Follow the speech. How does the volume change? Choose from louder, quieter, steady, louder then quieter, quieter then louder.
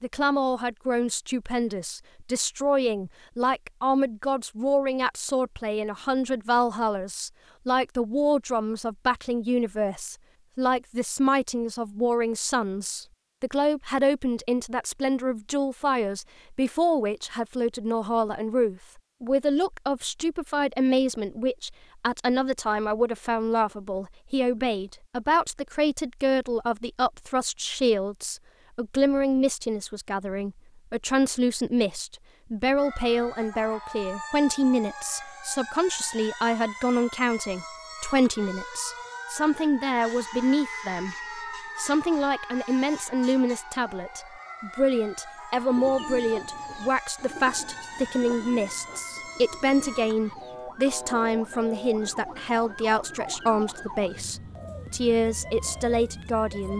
steady.